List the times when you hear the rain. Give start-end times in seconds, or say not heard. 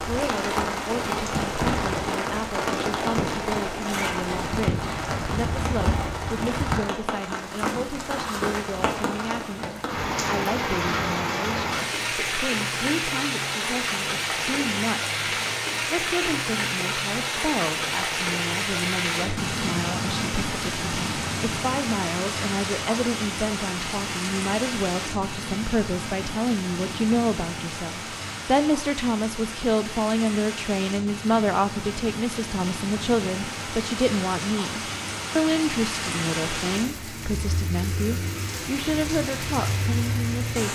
0.0-40.6.